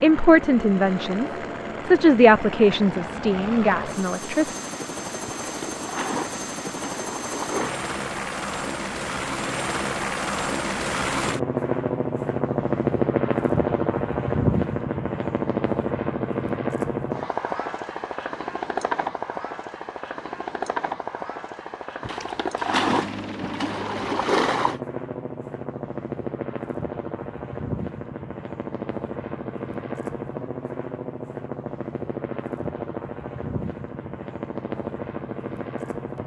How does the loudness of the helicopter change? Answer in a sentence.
The loudness of the helicopter goes up, then down.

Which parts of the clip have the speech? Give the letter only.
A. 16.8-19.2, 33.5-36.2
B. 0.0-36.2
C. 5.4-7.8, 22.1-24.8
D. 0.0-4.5
D.